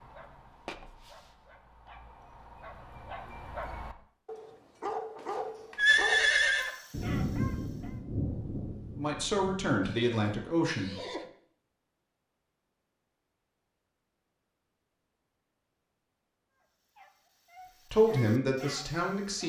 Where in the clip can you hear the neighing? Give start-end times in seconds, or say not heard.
5.8-6.7, 9.8-11.3.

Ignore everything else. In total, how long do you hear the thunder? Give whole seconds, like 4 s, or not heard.
3 s.